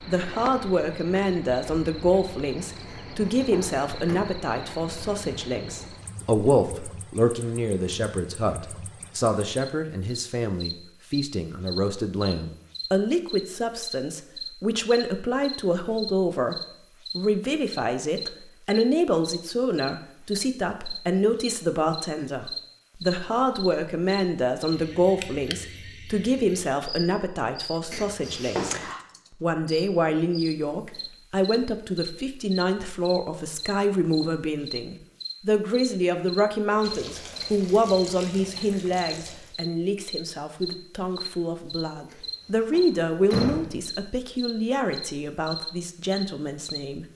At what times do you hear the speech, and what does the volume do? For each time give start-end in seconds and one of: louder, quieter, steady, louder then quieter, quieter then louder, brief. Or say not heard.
0.0-47.0 steady.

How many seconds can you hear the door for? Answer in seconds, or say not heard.
4 s.